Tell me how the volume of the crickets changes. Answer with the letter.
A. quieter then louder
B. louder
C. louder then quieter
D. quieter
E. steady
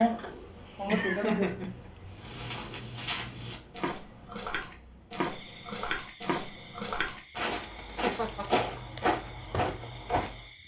D.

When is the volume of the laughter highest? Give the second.
1 s.